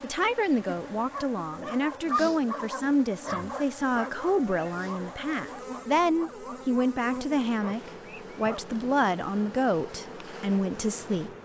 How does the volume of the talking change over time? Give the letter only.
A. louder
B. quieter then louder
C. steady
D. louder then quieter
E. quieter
C.